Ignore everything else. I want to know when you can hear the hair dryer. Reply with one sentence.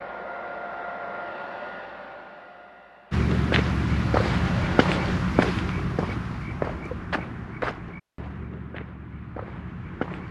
You can hear the hair dryer from 0.0 to 5.3 s.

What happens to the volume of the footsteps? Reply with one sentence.
The loudness of the footsteps goes down.